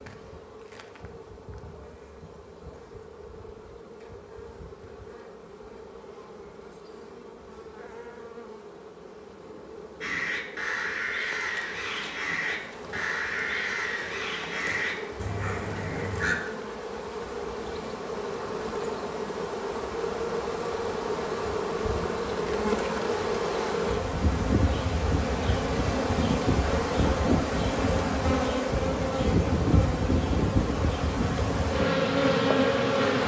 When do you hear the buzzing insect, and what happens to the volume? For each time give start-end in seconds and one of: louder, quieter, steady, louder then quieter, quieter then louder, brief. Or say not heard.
0.0-33.2 louder.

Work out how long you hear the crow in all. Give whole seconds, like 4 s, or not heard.
6 s.